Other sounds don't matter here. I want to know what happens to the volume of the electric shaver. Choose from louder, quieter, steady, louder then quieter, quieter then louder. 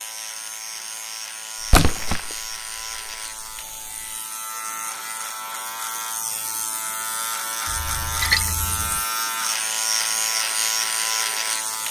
louder.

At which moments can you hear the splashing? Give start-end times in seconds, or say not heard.
1.6-3.1, 7.7-9.0.